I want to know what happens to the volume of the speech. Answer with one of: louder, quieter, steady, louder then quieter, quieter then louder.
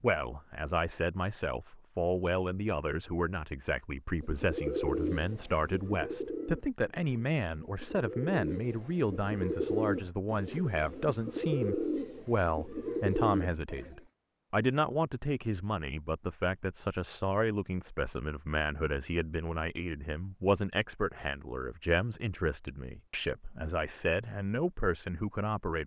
steady.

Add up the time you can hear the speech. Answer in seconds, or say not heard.
26 s.